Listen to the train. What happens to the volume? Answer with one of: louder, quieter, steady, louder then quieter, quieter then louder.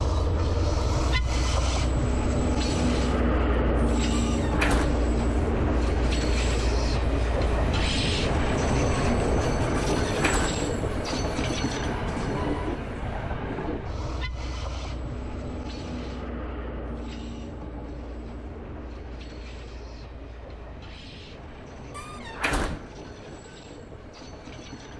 quieter.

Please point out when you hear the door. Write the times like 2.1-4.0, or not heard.
4.2-5.0, 10.0-10.7, 21.9-22.9.